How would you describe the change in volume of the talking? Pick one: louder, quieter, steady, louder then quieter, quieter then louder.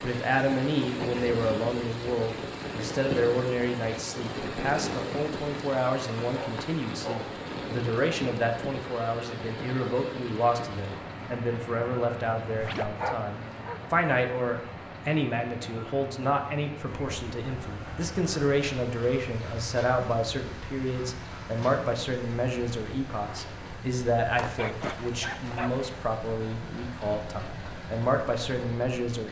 steady.